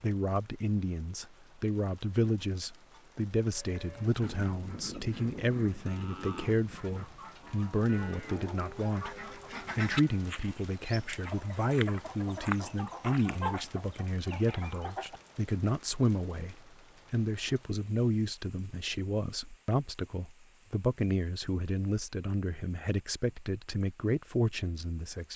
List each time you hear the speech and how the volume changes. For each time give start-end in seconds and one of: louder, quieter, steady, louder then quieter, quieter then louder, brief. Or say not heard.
0.0-25.3 steady.